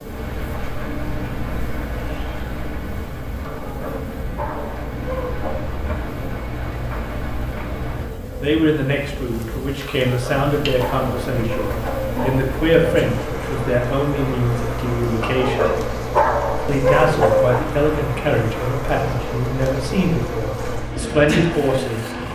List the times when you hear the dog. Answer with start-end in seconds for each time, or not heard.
3.5-5.6, 9.8-12.6, 15.2-17.6.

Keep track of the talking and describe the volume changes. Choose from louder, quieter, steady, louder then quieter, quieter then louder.
steady.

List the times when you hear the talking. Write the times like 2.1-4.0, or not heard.
8.4-15.8, 16.6-22.1.